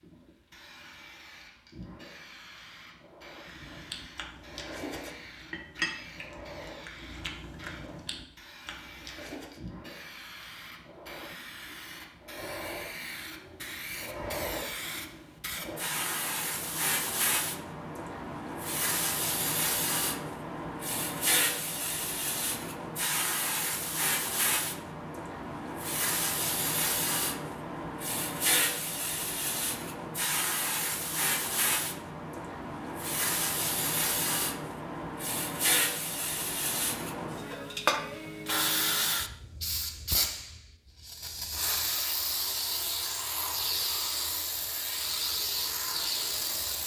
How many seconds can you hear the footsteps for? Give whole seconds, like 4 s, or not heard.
not heard.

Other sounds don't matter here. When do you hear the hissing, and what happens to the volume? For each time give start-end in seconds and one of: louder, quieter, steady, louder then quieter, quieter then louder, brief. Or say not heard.
0.0-46.8 louder.